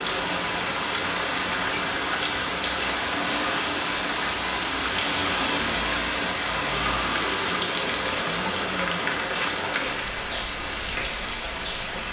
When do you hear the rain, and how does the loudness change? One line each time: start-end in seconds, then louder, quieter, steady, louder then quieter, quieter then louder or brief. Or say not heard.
0.0-12.0 steady.